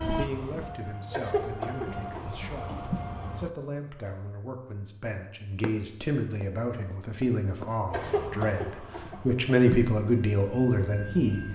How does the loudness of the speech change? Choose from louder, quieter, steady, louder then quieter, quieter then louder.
louder.